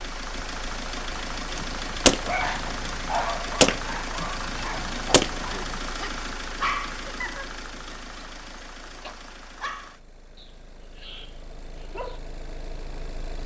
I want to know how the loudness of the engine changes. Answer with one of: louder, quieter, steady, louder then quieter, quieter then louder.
quieter.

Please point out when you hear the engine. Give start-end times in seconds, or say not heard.
0.0-13.4.